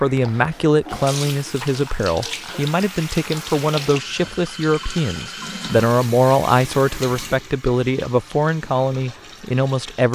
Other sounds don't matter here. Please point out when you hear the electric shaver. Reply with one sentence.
You can't hear the electric shaver here.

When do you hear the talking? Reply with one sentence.
You can hear the talking from 0.0 to 10.0 s.